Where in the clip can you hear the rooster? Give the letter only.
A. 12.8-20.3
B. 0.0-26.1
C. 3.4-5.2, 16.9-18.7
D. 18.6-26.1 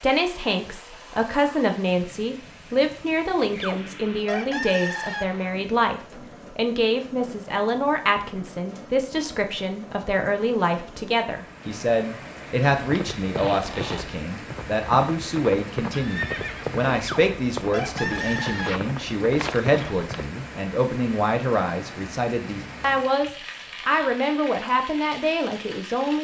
C.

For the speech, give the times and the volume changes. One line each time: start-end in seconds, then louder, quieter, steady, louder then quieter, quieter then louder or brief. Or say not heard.
0.0-26.1 steady.